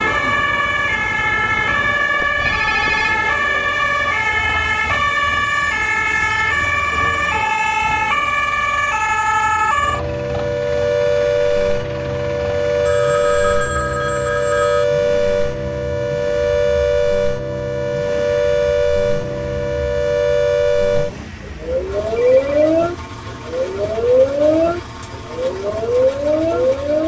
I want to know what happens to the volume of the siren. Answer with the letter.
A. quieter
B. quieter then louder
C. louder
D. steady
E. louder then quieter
D.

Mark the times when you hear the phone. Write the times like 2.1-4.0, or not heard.
2.1-3.1, 12.8-14.8, 22.1-22.6.